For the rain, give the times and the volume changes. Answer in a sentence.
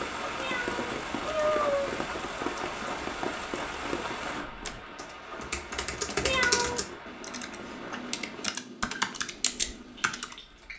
You can hear the rain from 0.0 to 10.7 s, getting quieter.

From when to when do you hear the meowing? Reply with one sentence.
You can hear the meowing from 0.3 to 2.0 s and from 6.2 to 6.8 s.